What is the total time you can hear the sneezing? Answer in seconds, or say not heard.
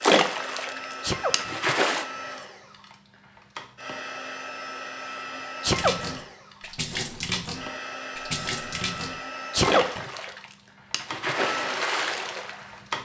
2 s.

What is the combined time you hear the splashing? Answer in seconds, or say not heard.
9 s.